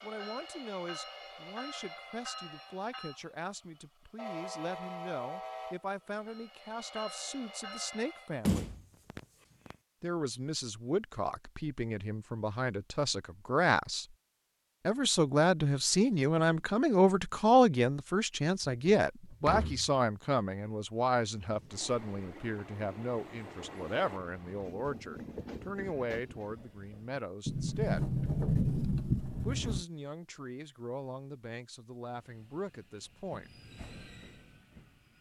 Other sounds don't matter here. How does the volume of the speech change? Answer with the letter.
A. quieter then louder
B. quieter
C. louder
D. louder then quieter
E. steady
D.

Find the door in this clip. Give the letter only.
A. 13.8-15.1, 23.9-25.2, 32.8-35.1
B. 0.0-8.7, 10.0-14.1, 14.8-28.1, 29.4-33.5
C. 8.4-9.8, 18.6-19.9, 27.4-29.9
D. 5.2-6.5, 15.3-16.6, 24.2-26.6
C.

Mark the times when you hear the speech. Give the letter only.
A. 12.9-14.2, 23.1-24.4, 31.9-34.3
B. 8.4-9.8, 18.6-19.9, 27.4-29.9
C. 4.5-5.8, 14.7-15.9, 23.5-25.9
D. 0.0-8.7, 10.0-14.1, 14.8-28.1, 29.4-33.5
D.